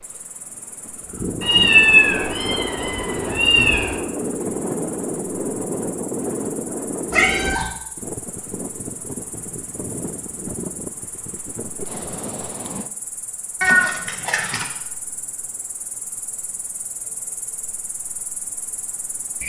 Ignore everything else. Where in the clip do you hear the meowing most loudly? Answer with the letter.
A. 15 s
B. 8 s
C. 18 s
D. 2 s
D.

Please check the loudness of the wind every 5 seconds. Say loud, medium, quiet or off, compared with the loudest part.
loud, loud, medium, off.